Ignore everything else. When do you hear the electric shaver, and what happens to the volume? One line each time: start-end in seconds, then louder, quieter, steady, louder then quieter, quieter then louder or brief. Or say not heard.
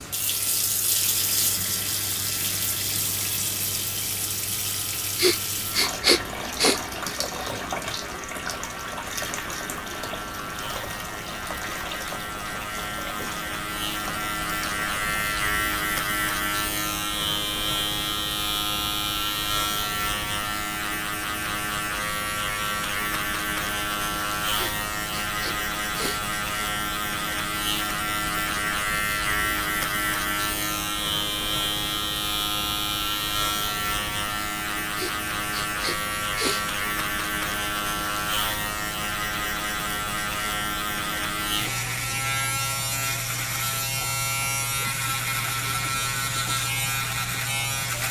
0.0-48.0 louder.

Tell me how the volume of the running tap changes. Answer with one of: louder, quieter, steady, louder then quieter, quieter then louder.
quieter.